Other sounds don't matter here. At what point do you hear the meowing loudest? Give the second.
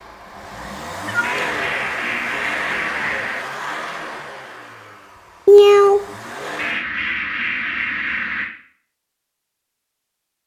6 s.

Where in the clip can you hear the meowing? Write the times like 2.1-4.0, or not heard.
1.1-1.7, 5.5-6.0.